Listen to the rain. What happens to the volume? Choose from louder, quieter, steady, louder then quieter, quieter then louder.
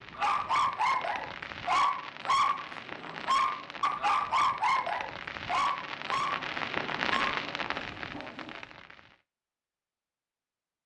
louder.